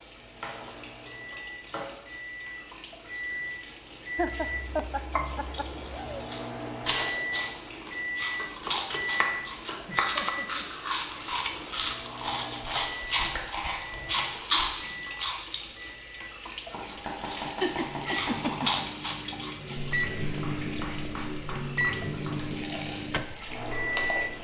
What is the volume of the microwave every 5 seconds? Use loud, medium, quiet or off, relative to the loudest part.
medium, loud, medium, medium, loud.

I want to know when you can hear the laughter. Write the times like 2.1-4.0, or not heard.
4.2-6.2, 9.8-10.7, 17.4-18.8.